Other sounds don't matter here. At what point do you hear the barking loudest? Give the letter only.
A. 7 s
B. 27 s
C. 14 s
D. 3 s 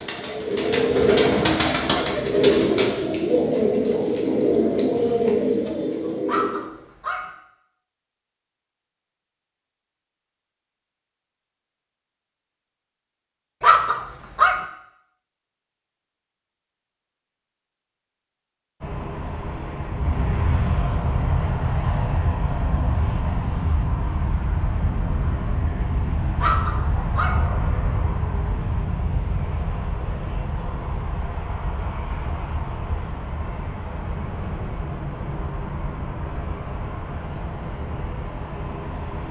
C.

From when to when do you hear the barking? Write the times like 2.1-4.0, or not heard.
6.2-7.2, 13.6-14.6, 26.4-27.4.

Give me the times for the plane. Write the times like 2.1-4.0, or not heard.
18.8-39.2.